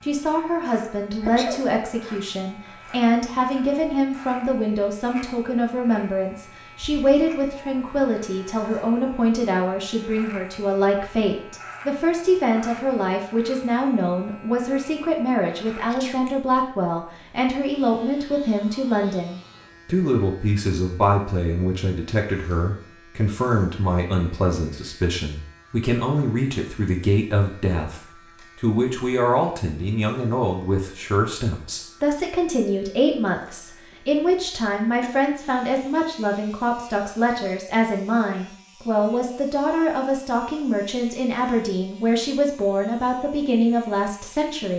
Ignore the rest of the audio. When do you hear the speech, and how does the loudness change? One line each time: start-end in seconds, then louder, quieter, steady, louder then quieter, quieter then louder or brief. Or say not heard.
0.0-44.7 steady.